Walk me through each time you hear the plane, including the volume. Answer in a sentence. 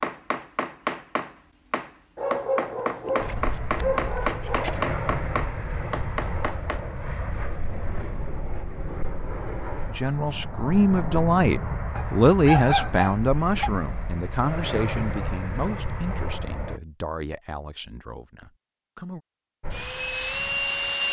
You can hear the plane from 3.1 to 16.8 s, at a steady volume; and briefly from 19.6 to 21.0 s.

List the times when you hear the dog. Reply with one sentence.
The dog can be heard from 2.1 to 4.8 s and from 11.9 to 13.7 s.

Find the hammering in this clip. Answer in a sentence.
You can hear the hammering from 0.0 to 6.8 s.